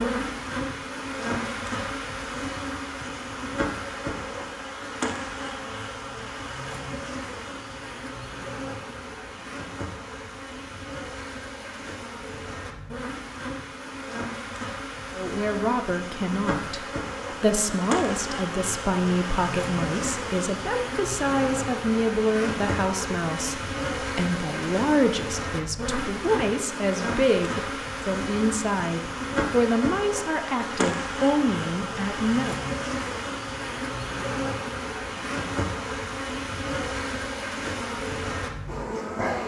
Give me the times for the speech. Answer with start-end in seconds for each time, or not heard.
15.2-32.5.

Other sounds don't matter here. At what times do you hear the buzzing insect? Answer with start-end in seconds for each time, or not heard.
0.0-39.4.